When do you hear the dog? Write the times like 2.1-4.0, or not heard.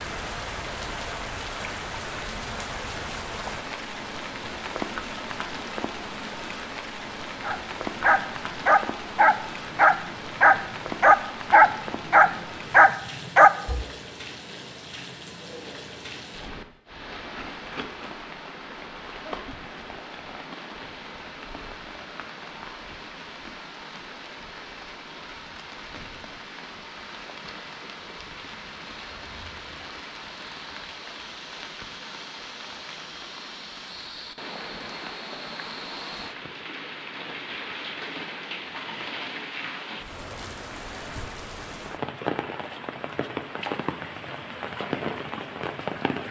7.4-13.8.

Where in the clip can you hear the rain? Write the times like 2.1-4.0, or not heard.
0.0-46.2.